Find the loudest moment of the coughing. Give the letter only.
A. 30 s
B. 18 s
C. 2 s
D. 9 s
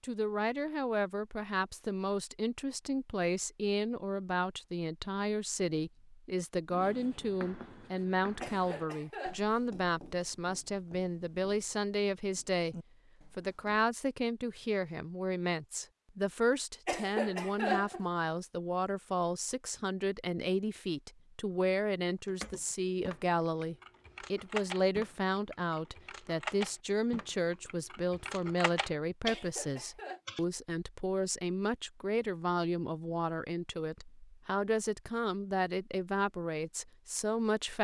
B.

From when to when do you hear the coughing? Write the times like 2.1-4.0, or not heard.
8.4-9.5, 16.9-18.1, 29.2-30.2.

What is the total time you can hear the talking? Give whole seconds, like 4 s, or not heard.
38 s.